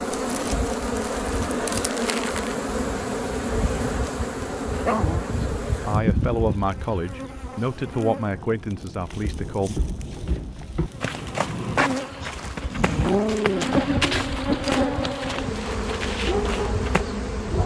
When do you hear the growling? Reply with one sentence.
The growling can be heard from 4.7 to 5.2 s and from 12.2 to 14.1 s.